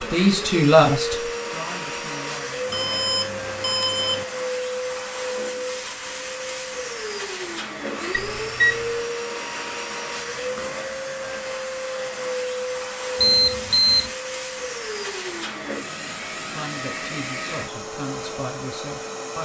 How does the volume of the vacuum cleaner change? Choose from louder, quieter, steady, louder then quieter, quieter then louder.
steady.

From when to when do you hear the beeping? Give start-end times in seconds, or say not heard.
2.6-4.2, 8.1-8.8, 13.2-14.1.